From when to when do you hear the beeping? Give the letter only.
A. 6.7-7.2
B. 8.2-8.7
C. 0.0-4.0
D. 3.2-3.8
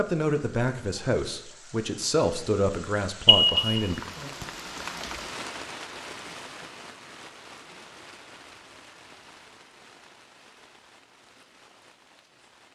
D.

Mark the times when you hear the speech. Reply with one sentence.
You can hear the speech from 0.0 to 4.0 s.